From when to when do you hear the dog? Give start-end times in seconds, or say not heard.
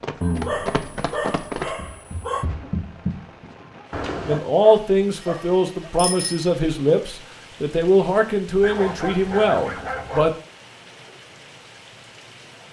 0.2-2.5, 4.2-5.9, 8.6-10.4.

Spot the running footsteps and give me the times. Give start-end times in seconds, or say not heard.
0.0-4.4.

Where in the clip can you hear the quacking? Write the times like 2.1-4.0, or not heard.
not heard.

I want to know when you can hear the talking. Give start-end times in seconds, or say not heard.
4.2-10.3.